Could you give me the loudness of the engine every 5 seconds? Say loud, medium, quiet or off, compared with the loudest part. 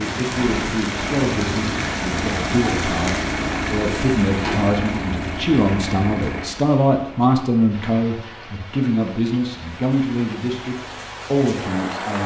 loud, loud, off.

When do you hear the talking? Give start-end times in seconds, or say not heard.
0.0-12.2.